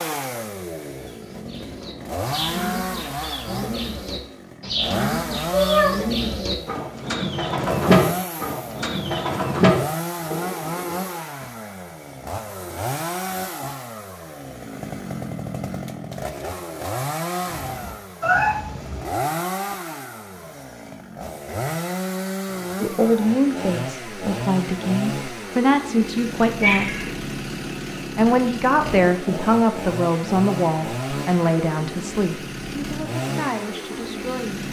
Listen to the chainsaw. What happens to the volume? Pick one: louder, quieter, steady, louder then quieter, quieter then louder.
steady.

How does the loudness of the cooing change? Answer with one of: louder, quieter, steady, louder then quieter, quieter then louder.
louder.